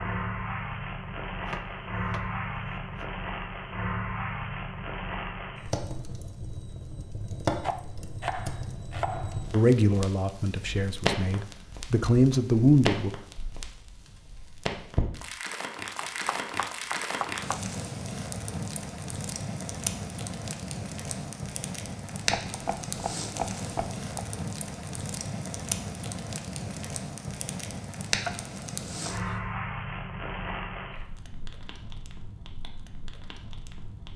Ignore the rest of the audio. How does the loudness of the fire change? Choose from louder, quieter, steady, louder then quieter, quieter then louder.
steady.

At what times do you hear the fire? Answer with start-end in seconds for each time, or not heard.
0.0-34.1.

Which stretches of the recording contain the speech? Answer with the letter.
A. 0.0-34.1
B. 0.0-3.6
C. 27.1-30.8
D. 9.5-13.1
D.